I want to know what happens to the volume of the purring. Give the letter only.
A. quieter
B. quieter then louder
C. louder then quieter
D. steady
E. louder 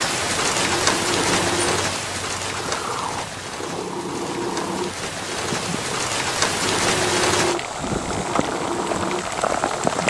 D.